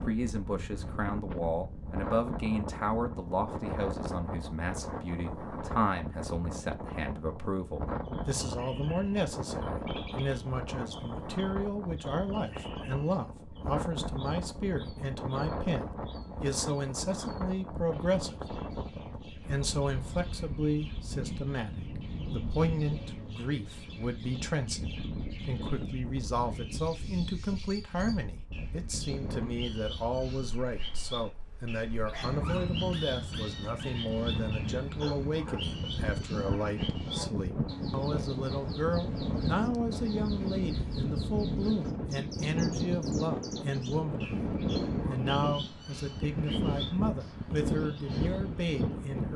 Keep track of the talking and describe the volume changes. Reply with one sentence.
The volume of the talking stays about the same.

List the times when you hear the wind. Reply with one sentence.
You can hear the wind from 0.0 to 49.3 s.